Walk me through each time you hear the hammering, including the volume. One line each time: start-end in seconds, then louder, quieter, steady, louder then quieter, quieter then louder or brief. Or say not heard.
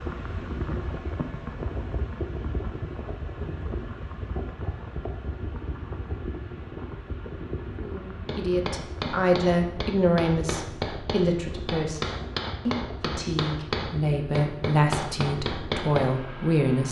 8.2-16.1 steady.